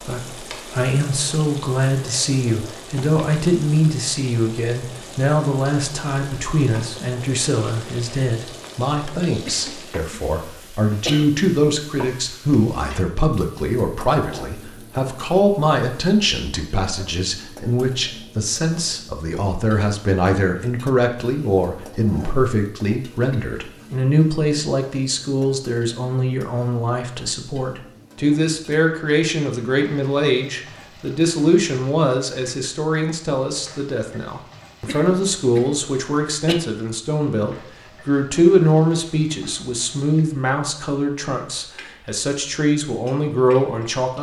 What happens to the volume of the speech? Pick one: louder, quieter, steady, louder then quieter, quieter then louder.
steady.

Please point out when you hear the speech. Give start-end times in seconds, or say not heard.
0.0-44.1.